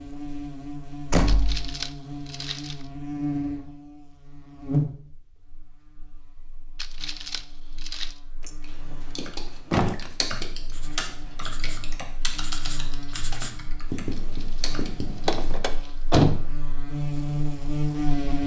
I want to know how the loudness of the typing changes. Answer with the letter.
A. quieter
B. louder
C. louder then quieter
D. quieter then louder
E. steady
C.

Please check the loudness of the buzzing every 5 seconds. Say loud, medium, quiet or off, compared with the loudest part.
loud, quiet, quiet, loud.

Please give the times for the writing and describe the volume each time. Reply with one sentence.
You can hear the writing from 8.7 to 15.6 s, getting louder.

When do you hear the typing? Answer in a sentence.
The typing can be heard from 8.6 to 15.1 s.